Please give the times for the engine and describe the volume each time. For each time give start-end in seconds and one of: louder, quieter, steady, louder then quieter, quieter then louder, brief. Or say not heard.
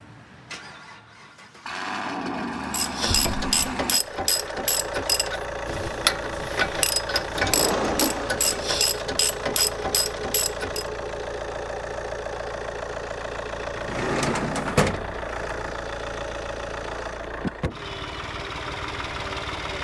0.0-19.8 steady.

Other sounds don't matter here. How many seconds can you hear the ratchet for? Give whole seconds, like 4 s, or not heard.
8 s.